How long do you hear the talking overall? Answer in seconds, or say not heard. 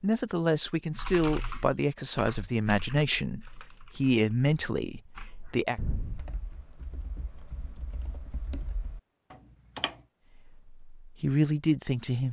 8 s.